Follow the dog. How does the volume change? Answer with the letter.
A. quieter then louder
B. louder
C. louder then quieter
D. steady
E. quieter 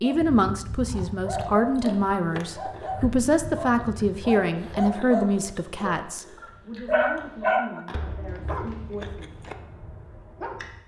C.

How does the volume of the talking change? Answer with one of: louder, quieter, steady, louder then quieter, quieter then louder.
quieter.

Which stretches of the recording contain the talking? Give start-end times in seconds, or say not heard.
0.0-9.4.